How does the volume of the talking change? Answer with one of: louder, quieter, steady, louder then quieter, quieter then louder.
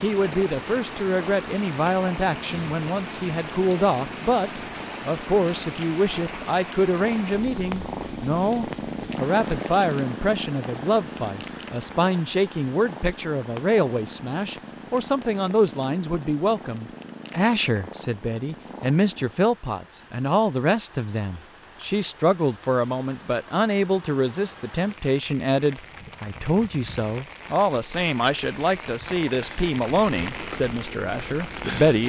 steady.